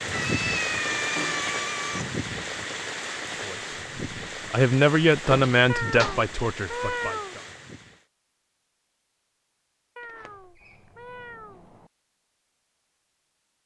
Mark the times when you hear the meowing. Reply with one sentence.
You can hear the meowing from 0.1 to 2.0 s, from 5.7 to 7.3 s and from 9.9 to 11.7 s.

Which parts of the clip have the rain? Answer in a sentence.
The rain can be heard from 0.0 to 8.1 s.